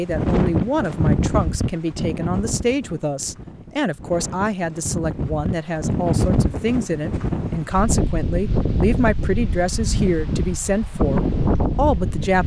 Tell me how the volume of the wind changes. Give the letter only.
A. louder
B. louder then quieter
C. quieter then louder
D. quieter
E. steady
C.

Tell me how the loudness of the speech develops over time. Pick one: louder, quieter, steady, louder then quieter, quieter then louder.
steady.